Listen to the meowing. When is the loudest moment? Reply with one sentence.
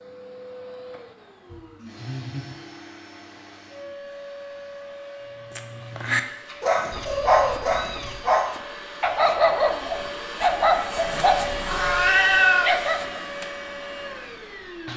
The loudest moment of the meowing is at 12 seconds.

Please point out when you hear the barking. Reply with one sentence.
The barking can be heard from 5.5 to 13.2 s.